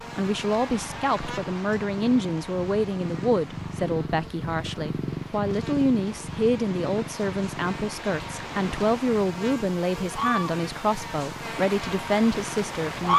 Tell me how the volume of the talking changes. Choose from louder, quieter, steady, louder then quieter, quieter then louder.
steady.